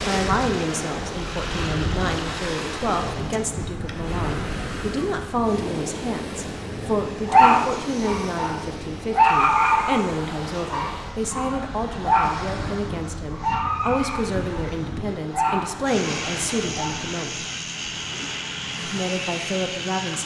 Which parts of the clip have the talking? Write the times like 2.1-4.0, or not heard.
0.0-17.4, 18.9-20.2.